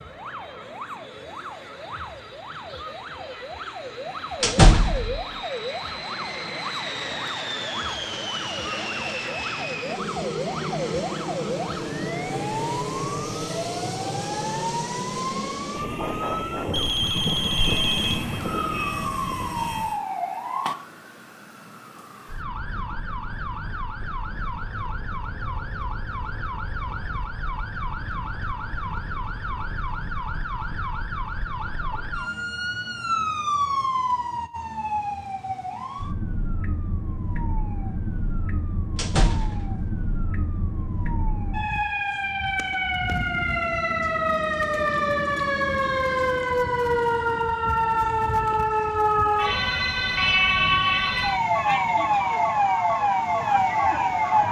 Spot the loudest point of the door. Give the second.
5 s.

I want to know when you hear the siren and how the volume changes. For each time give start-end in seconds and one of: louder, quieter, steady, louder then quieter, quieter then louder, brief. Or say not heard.
0.0-54.4 louder.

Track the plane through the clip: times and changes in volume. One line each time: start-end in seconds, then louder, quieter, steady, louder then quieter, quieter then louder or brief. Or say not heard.
0.0-20.0 louder.